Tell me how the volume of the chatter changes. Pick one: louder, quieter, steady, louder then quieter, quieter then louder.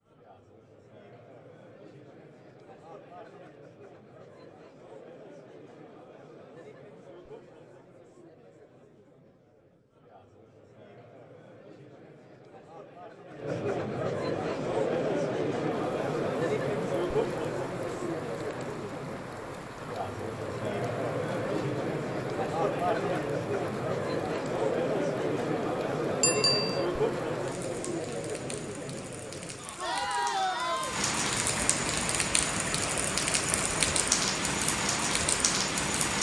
louder.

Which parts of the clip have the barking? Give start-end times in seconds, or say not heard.
not heard.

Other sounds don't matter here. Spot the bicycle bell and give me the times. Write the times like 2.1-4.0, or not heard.
26.2-26.9.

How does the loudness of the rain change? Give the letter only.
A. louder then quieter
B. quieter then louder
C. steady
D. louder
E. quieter
D.